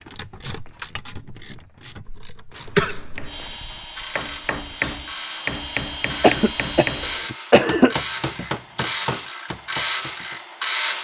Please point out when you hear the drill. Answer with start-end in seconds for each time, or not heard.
3.2-7.2.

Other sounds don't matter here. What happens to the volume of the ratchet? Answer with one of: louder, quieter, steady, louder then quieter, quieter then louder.
louder.